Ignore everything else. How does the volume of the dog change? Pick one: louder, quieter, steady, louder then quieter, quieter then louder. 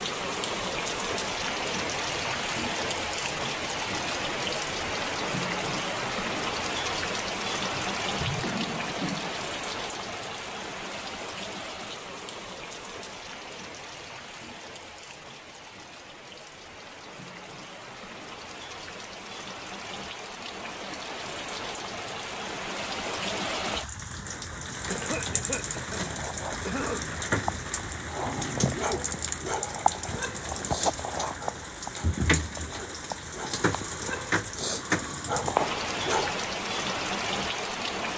quieter then louder.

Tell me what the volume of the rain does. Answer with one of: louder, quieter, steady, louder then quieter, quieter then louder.
quieter then louder.